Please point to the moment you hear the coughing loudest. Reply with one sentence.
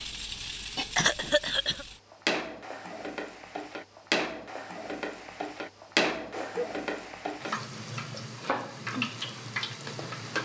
The volume of the coughing peaks at 1 second.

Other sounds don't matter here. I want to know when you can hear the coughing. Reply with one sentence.
You can hear the coughing from 0.9 to 1.9 s and from 6.2 to 6.7 s.